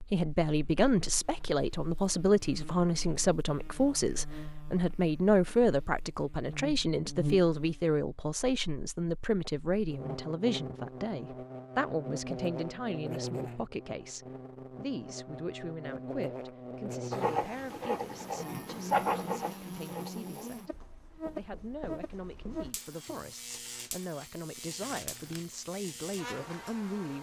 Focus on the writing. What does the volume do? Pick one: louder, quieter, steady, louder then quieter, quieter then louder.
louder then quieter.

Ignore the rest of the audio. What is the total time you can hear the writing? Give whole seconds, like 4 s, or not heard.
6 s.